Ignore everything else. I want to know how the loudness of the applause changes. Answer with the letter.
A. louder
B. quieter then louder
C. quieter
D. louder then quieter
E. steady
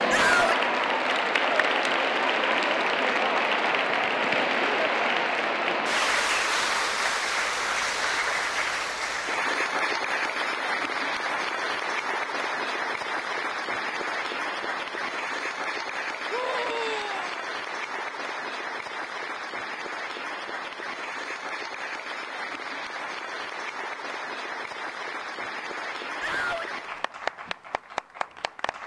C.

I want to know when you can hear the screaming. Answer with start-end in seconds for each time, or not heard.
0.1-0.6, 16.3-17.4, 26.2-26.7.